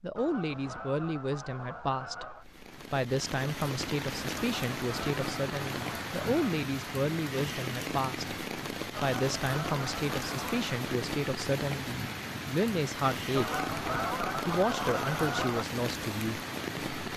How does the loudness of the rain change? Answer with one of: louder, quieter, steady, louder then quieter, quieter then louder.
steady.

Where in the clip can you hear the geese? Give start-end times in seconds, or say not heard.
0.1-2.5, 4.3-6.7, 8.9-10.8, 13.3-15.7.